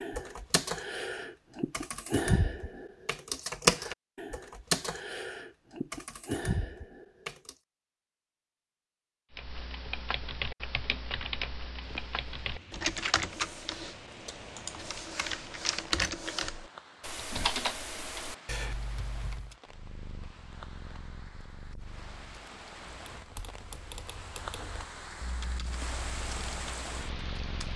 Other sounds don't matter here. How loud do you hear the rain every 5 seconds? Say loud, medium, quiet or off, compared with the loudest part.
off, off, medium, medium, medium, loud.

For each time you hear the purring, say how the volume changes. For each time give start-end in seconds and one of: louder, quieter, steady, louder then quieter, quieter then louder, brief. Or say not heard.
19.6-27.7 quieter then louder.